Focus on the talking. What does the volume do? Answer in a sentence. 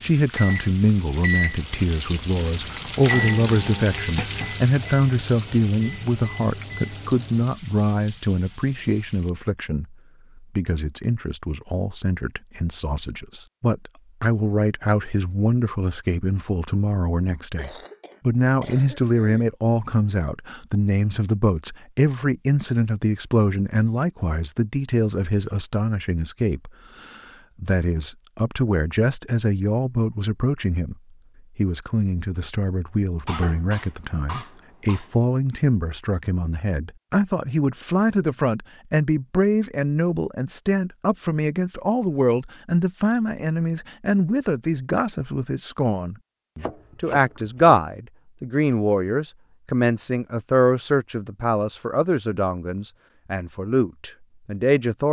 The volume of the talking stays about the same.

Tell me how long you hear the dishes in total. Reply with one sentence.
The dishes can't be heard in this clip.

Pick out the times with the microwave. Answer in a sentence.
You can hear the microwave from 0.2 to 7.5 s.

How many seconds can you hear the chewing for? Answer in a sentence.
The chewing can't be heard in this clip.